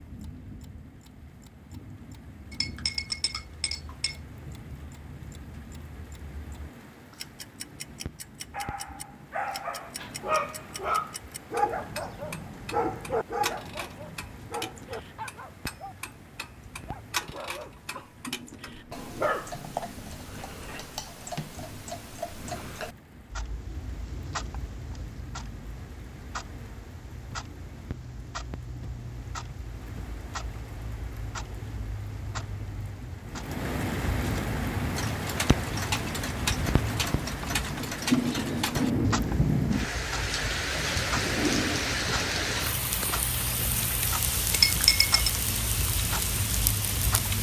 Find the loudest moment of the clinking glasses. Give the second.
45 s.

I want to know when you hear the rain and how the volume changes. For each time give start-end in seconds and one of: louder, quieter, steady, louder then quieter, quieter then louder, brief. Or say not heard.
0.0-47.3 louder.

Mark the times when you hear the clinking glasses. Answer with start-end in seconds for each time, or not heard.
2.5-4.2, 44.5-45.3.